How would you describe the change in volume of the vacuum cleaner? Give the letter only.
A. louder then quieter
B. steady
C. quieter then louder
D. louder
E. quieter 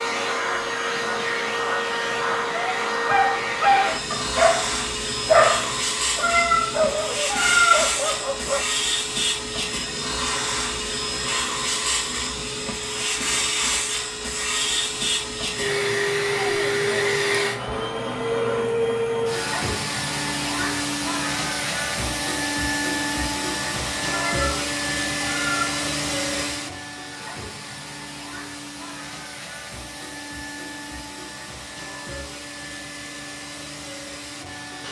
E.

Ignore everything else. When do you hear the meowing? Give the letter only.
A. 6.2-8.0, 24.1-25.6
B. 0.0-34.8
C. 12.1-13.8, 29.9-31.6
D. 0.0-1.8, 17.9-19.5
A.